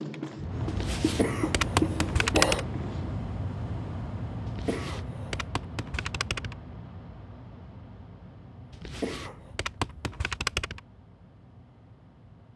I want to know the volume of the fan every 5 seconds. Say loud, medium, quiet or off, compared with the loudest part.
loud, medium, quiet.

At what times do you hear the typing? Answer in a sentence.
You can hear the typing from 0.7 to 2.6 s, from 4.5 to 6.5 s and from 8.7 to 10.8 s.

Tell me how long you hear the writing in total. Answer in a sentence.
You can hear the writing for 3 seconds altogether.